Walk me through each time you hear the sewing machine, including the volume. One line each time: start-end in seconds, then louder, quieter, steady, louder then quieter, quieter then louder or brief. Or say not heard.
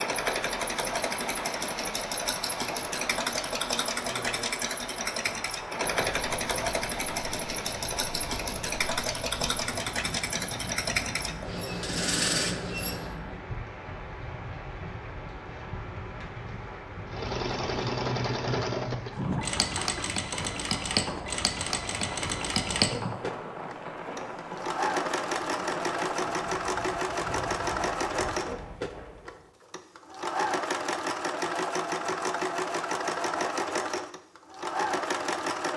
0.0-13.2 steady
17.1-35.7 steady.